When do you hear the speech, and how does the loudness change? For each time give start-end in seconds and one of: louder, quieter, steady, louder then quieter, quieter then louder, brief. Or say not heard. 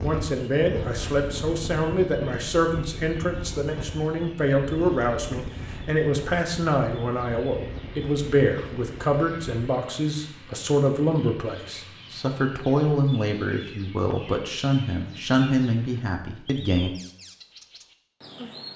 0.0-16.9 steady.